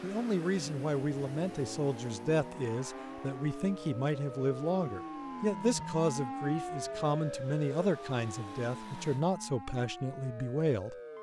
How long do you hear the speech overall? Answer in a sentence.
You can hear the speech for 11 seconds altogether.